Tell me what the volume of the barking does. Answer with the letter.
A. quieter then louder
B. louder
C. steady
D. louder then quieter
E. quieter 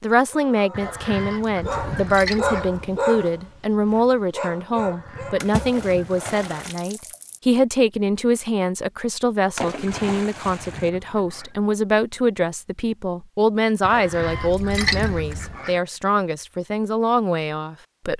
D.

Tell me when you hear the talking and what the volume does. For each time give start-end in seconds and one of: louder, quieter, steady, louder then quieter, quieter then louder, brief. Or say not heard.
0.0-18.1 steady.